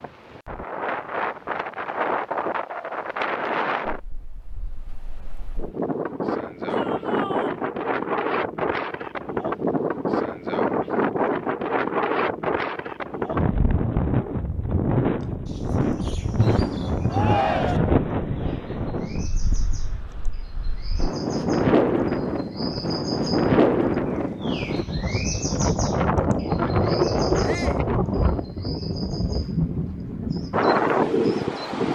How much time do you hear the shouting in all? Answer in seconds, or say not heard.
2 s.